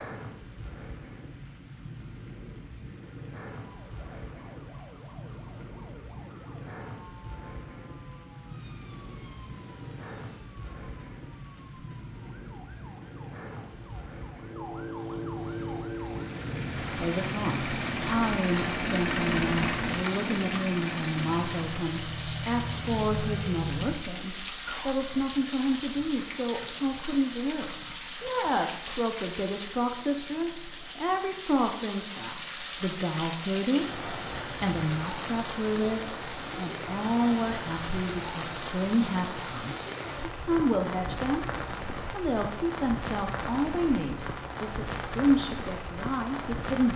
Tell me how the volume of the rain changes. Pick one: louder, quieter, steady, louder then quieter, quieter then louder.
louder.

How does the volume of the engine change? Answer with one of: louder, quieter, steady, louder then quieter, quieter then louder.
louder then quieter.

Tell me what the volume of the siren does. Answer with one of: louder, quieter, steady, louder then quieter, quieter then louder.
louder.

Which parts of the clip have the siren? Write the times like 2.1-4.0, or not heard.
3.5-16.3.